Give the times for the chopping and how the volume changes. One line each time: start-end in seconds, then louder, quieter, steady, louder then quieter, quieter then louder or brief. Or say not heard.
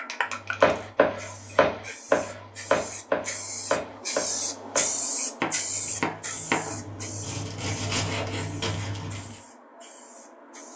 0.6-9.3 quieter.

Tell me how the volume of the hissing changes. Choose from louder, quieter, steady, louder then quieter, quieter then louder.
louder then quieter.